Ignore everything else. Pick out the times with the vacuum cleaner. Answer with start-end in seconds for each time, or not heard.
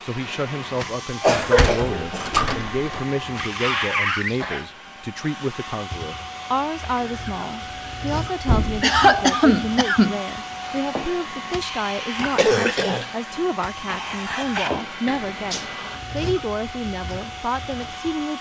0.0-18.3.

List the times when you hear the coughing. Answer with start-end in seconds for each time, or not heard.
1.2-2.5, 8.8-10.2, 12.3-13.1.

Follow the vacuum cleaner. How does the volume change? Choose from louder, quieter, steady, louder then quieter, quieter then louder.
steady.